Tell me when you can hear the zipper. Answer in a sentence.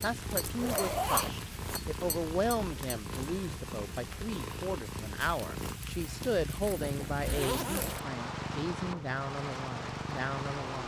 You can hear the zipper from 0.6 to 1.8 s and from 6.2 to 8.1 s.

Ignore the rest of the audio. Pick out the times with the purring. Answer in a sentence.
You can hear the purring from 0.0 to 10.8 s.